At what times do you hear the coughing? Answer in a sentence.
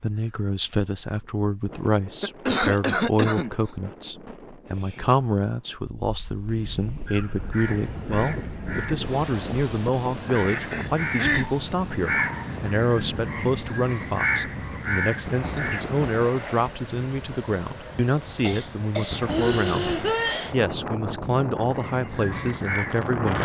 The coughing can be heard from 2.2 to 3.5 s, from 10.3 to 11.5 s and from 18.4 to 20.6 s.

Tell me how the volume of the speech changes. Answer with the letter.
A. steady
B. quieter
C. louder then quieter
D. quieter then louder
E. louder
A.